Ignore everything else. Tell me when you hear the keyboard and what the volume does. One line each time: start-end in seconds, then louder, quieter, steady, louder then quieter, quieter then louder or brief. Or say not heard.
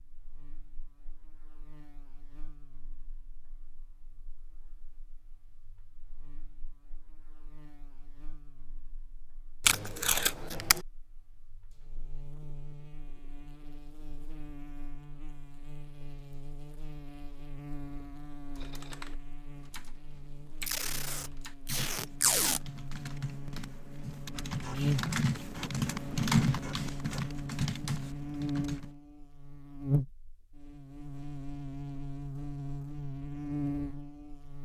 18.6-28.9 louder then quieter.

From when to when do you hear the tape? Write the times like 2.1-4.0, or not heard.
9.7-10.8, 20.6-22.6.